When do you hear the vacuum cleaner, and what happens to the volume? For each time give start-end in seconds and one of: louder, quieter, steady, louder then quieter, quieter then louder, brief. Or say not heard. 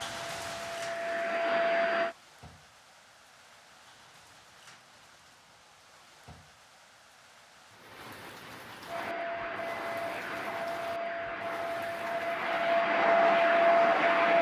0.0-2.1 brief
8.8-14.3 louder.